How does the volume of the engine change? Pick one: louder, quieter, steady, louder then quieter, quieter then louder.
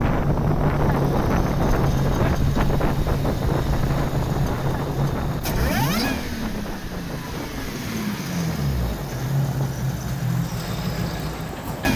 steady.